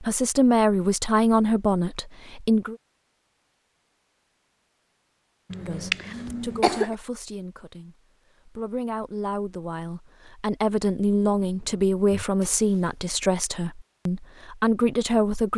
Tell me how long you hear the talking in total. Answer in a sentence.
You can hear the talking for 13 seconds altogether.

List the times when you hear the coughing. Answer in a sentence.
You can hear the coughing from 5.5 to 7.0 s.